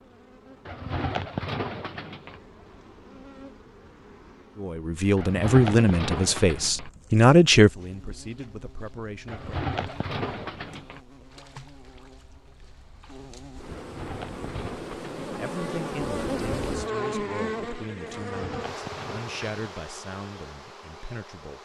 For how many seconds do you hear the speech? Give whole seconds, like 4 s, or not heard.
11 s.